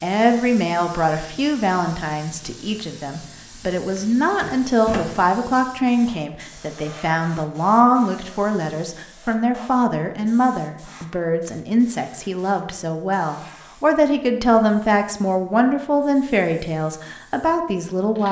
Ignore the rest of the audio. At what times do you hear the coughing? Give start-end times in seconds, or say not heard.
not heard.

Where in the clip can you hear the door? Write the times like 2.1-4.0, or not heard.
4.0-5.2.